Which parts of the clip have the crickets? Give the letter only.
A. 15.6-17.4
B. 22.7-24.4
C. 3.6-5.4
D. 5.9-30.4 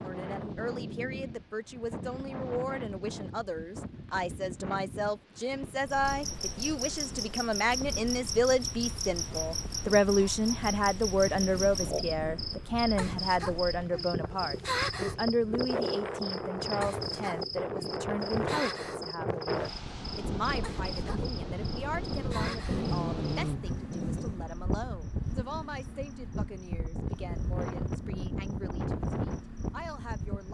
D.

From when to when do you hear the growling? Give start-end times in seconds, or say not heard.
22.7-24.4.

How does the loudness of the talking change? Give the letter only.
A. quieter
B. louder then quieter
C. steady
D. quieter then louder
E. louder
B.